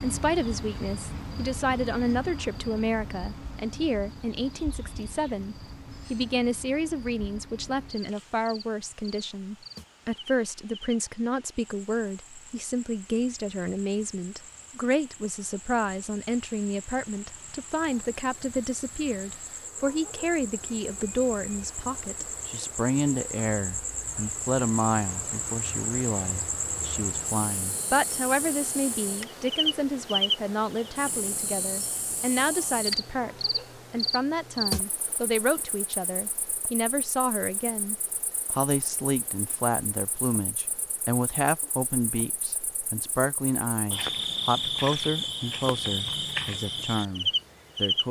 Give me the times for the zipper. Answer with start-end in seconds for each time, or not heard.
not heard.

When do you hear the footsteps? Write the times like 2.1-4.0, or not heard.
not heard.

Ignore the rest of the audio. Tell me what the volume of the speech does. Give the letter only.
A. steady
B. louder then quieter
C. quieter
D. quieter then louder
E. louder
A.